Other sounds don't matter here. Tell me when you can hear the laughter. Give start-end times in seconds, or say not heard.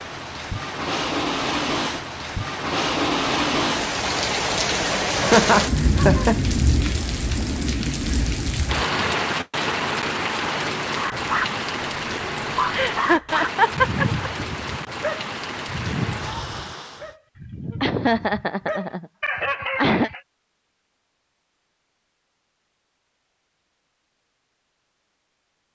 5.2-6.4, 12.7-14.2, 17.8-20.1.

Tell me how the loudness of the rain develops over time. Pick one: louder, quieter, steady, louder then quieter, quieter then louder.
quieter.